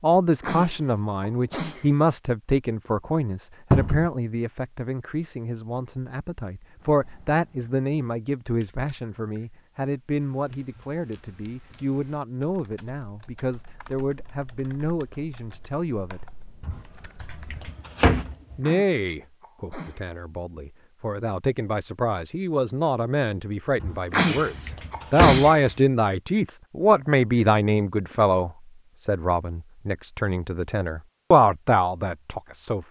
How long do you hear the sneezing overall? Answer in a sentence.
The sneezing can be heard for 5 seconds in total.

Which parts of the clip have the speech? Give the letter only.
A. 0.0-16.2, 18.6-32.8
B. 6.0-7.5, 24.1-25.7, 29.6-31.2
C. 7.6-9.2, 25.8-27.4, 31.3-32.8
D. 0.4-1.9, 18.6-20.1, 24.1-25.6
A.